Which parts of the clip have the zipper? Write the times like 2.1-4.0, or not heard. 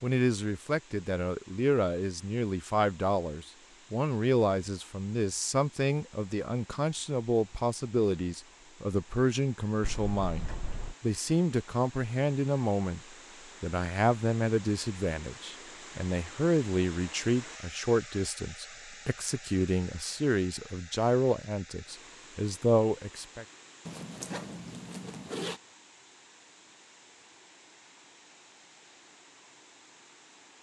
9.8-10.9, 23.9-25.6.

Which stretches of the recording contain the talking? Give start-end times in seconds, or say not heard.
0.0-13.0, 13.6-23.4.